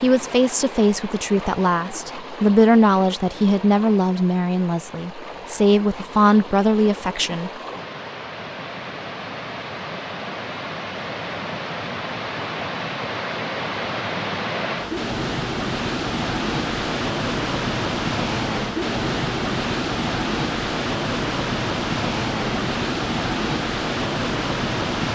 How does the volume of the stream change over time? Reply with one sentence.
The volume of the stream goes up.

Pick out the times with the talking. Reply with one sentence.
You can hear the talking from 0.0 to 7.5 s.